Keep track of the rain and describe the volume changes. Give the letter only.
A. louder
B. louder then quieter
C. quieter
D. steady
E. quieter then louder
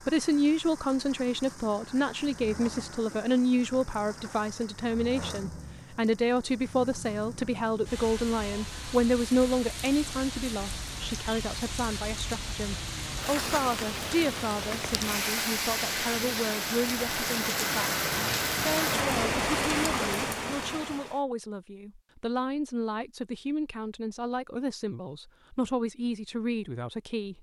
A.